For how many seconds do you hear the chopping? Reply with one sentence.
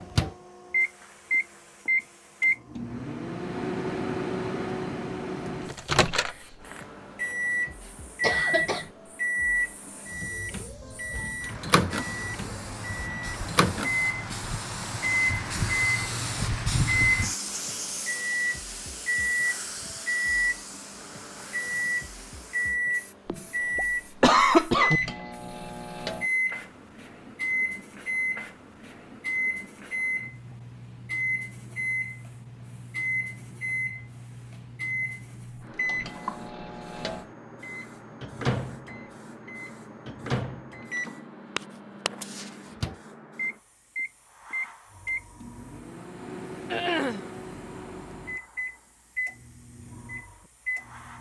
The chopping can't be heard in this clip.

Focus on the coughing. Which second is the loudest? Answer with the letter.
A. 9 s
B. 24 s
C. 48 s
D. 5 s
B.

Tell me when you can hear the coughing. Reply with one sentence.
The coughing can be heard from 8.2 to 8.9 s, from 23.2 to 25.0 s and from 46.7 to 47.2 s.